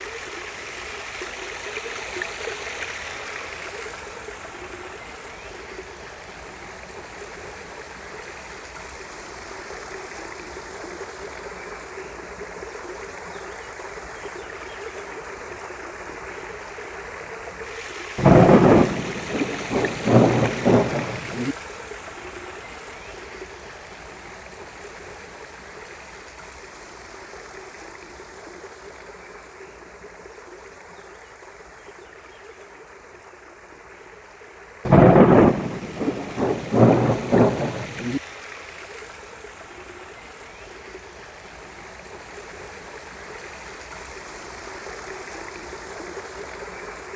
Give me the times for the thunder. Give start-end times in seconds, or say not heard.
18.1-21.6, 34.9-38.2.